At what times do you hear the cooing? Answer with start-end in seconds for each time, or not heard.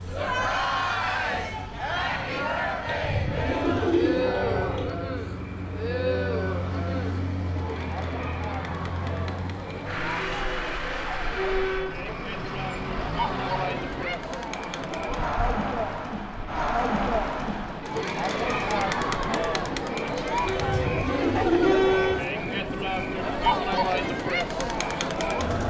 2.9-4.9, 20.4-22.2.